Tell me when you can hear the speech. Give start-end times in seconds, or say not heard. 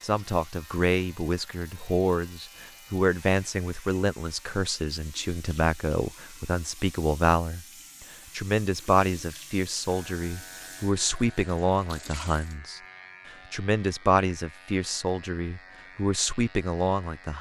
0.0-7.7, 8.3-12.8, 13.5-17.3.